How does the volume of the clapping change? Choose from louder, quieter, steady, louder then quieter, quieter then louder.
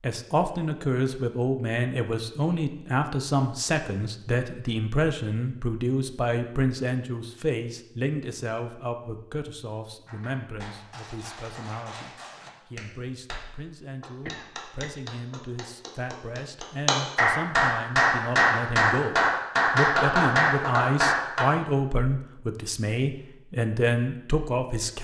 louder.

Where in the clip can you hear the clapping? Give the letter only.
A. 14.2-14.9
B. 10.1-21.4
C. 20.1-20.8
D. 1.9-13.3
B.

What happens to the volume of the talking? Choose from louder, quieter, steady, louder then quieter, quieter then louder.
quieter then louder.